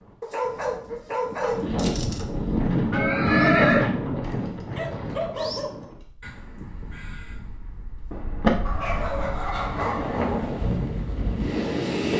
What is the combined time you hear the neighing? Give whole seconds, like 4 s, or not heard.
3 s.